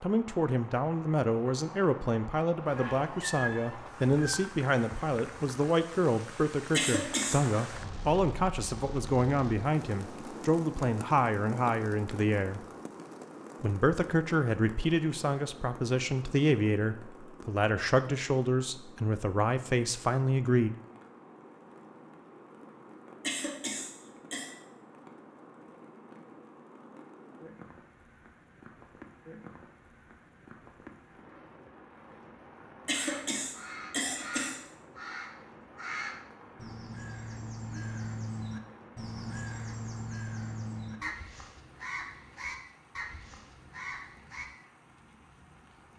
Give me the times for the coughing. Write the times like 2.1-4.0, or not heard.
6.7-7.4, 23.2-24.5, 32.9-34.6.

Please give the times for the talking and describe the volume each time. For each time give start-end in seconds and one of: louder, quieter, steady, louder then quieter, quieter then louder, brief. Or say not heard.
0.0-12.7 steady
13.6-20.8 steady.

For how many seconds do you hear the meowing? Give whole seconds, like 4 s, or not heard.
2 s.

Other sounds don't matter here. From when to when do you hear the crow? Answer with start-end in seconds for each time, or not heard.
32.9-44.5.